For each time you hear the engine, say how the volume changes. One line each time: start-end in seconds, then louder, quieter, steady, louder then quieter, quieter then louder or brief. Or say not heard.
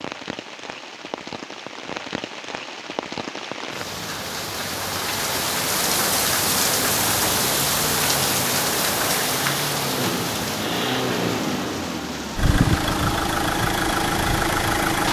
6.7-15.0 louder.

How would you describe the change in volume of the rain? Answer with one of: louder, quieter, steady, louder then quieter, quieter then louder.
louder then quieter.